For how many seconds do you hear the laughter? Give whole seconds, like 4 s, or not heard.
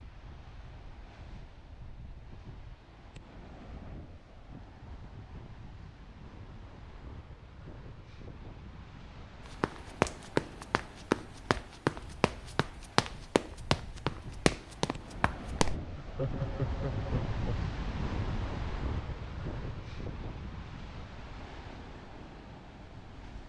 2 s.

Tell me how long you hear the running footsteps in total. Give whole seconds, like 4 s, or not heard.
6 s.